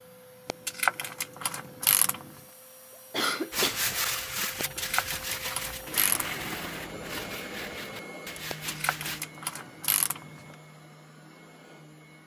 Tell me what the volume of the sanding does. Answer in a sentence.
The loudness of the sanding goes down.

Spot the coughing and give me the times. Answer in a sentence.
The coughing can be heard from 3.1 to 3.8 s.